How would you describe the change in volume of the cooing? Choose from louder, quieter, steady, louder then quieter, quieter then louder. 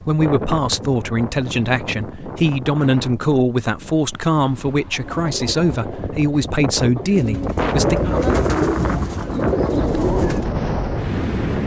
louder.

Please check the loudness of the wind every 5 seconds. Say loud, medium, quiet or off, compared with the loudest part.
medium, loud, loud.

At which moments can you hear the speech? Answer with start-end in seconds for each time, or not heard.
0.1-8.0.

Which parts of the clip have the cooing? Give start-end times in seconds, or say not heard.
4.9-10.5.